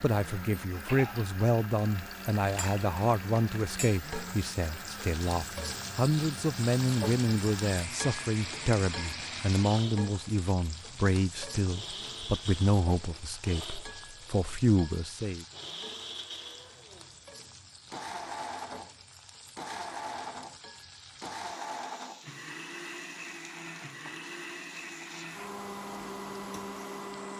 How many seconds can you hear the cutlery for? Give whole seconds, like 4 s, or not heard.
not heard.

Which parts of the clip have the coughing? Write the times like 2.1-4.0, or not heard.
not heard.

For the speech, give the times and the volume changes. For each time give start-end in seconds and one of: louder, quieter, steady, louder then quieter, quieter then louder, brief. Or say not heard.
0.0-15.4 steady.